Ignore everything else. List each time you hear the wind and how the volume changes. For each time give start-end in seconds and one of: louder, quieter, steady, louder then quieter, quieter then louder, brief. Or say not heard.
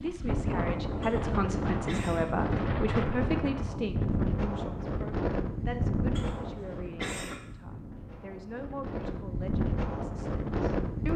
0.0-11.1 quieter then louder.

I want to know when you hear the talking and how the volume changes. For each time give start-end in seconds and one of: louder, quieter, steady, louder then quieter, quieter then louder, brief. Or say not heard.
0.0-11.1 quieter.